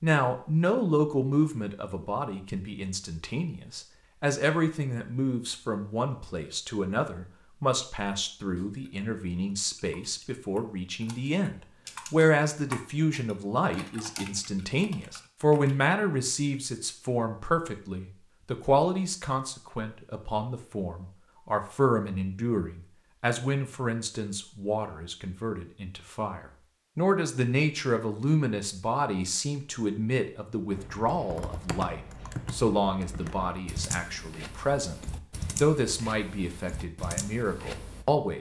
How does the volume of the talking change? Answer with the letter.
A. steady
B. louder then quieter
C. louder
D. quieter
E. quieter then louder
A.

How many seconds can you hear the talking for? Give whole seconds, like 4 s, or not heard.
38 s.